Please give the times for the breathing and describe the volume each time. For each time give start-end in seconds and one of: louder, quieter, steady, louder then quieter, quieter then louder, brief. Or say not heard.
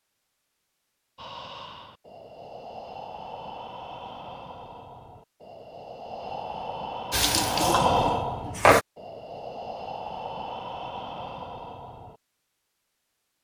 1.1-12.2 louder then quieter.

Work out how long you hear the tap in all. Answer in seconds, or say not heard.
2 s.